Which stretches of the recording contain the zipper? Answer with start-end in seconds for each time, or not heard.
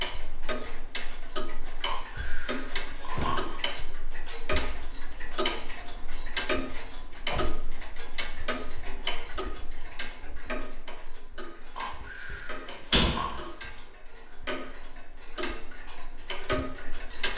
not heard.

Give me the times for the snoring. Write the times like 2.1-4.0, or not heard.
1.8-3.6, 11.8-13.6.